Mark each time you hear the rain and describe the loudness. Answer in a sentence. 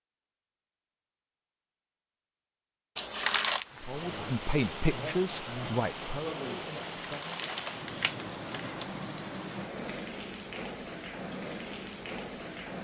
You can hear the rain from 3.5 to 12.8 s, at a steady volume.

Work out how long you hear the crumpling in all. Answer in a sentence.
You can hear the crumpling for 3 seconds altogether.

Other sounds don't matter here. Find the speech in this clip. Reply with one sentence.
The speech can be heard from 3.8 to 7.4 s.